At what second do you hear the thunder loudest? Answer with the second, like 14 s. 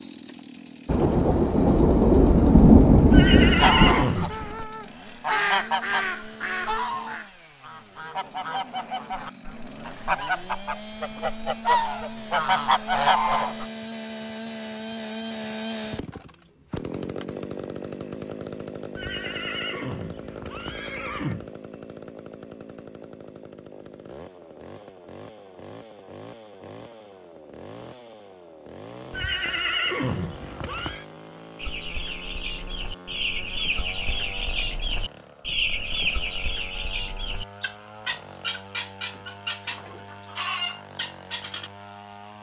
3 s.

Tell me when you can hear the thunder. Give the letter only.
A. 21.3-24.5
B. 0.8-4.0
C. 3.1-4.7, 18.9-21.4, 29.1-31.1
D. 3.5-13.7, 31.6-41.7
B.